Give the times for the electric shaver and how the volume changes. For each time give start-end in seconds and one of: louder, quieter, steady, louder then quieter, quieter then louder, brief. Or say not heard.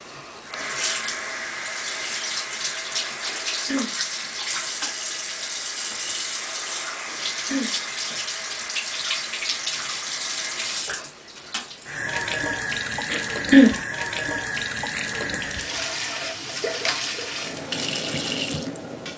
not heard.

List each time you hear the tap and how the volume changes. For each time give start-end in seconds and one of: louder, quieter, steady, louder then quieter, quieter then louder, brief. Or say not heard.
0.0-19.1 steady.